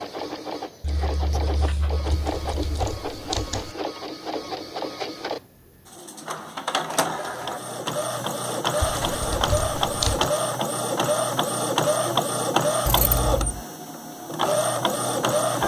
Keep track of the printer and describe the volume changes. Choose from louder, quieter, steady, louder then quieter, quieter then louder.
louder.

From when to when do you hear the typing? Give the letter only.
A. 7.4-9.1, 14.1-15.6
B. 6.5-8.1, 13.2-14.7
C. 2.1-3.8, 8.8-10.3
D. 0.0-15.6
C.